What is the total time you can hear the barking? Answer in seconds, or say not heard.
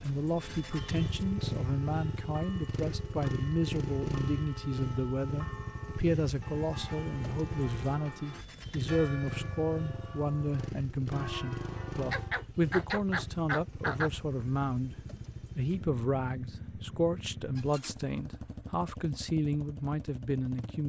2 s.